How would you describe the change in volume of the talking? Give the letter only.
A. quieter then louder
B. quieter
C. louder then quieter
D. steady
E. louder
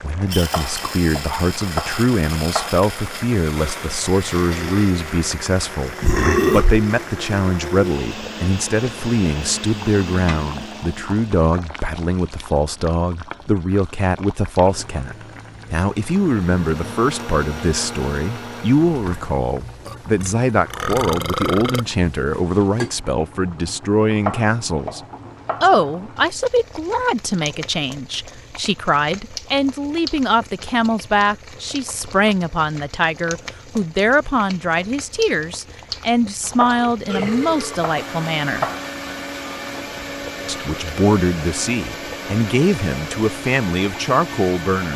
D.